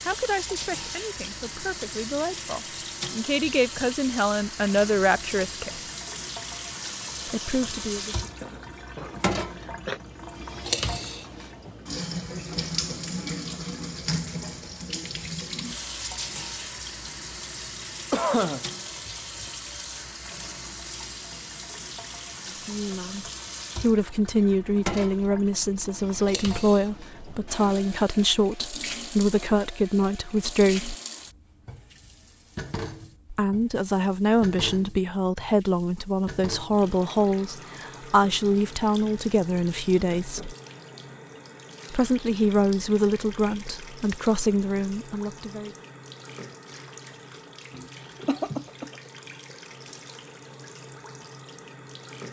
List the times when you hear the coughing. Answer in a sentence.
The coughing can be heard from 8.4 to 10.0 s, from 18.1 to 18.6 s and from 47.7 to 48.9 s.